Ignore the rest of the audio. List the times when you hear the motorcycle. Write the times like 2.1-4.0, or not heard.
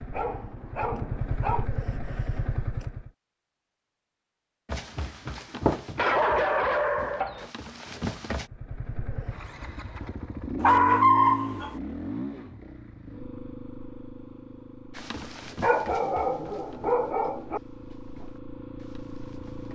0.0-3.1, 8.4-19.6.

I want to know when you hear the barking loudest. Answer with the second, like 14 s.
11 s.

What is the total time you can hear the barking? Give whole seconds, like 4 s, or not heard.
6 s.